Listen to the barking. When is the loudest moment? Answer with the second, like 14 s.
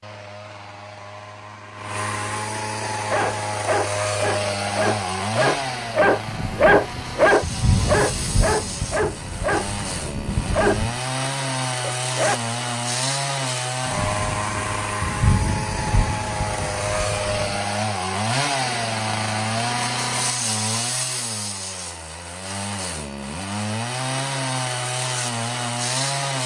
7 s.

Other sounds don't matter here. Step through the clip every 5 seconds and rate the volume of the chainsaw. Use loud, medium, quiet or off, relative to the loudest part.
loud, medium, loud, loud, loud, loud.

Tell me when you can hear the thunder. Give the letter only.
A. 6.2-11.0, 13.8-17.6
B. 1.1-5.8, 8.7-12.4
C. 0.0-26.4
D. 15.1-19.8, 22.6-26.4
A.